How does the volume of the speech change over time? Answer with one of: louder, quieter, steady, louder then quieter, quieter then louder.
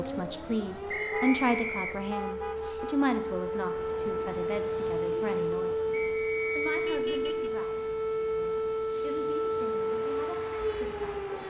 quieter.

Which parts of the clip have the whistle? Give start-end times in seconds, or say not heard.
0.8-2.0, 5.9-6.7.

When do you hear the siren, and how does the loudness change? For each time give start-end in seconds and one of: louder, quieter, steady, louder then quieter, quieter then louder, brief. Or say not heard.
0.0-11.4 louder.